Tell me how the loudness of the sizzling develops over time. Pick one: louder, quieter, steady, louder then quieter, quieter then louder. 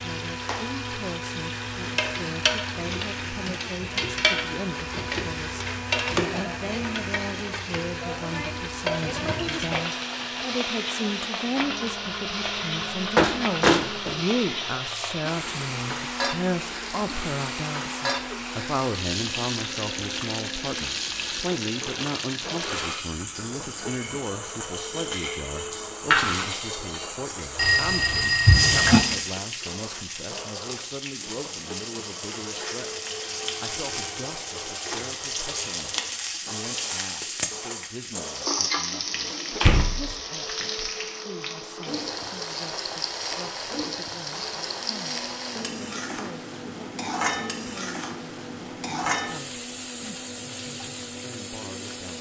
steady.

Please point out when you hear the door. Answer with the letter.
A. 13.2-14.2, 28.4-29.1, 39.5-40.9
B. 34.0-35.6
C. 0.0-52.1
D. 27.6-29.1
A.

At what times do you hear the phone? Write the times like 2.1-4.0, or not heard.
27.6-29.1.